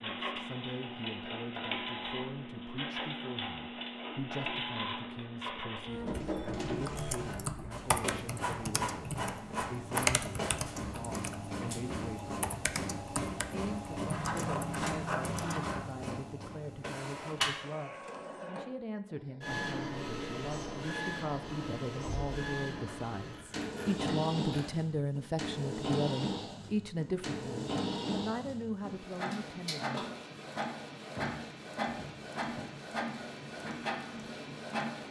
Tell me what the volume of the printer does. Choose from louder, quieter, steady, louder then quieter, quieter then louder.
steady.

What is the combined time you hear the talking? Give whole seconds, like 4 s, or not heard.
29 s.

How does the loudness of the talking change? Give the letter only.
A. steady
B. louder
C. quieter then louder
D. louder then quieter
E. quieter
B.